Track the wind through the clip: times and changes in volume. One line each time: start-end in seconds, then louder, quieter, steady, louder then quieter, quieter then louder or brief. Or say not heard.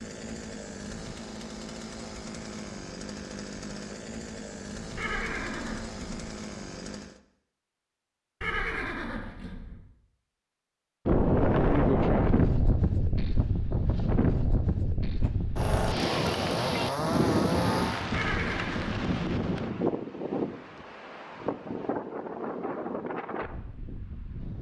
11.1-24.5 quieter.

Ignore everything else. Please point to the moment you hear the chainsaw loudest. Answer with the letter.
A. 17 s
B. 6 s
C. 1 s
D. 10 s
A.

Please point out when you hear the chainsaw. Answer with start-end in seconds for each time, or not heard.
0.0-7.2, 15.2-18.1.